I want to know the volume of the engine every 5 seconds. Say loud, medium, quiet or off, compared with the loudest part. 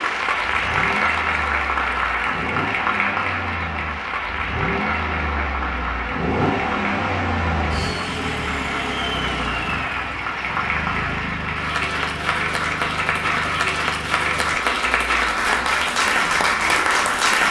medium, loud, medium, medium.